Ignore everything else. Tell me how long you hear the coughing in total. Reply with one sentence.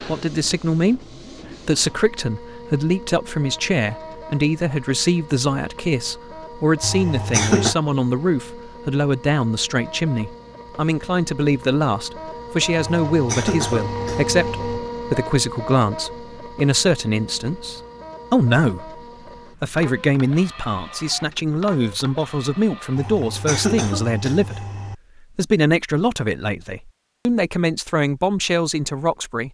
The coughing can be heard for 5 seconds in total.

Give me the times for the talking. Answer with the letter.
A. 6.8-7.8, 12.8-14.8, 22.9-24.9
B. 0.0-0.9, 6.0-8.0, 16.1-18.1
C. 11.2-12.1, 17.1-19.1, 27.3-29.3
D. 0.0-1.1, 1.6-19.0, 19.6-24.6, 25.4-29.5
D.